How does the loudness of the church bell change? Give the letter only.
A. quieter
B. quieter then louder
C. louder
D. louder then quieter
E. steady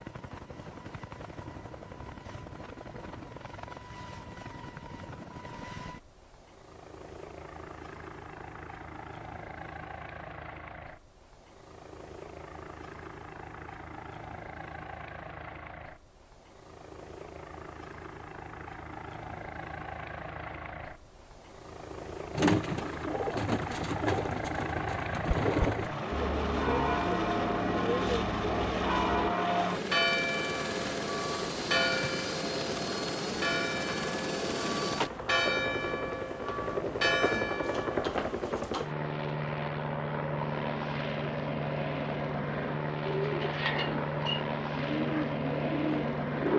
E.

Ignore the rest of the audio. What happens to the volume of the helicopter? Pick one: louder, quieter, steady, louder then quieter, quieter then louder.
louder.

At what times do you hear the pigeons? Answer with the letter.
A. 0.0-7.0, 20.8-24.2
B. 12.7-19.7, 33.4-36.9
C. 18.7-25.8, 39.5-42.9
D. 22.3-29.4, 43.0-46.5
D.